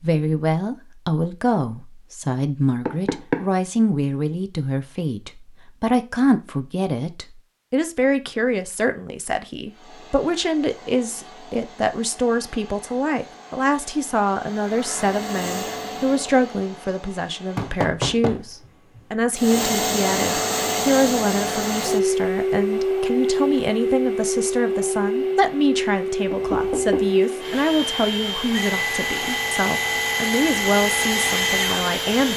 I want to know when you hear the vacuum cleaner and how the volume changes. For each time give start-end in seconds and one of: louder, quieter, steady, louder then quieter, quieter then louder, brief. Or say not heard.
9.7-17.9 louder then quieter
19.4-32.3 steady.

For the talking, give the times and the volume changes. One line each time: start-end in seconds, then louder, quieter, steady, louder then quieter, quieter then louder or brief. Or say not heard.
0.0-32.3 steady.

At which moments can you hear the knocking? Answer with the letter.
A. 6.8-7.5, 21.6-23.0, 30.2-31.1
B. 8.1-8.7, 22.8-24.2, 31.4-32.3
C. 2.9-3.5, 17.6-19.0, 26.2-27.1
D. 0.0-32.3
C.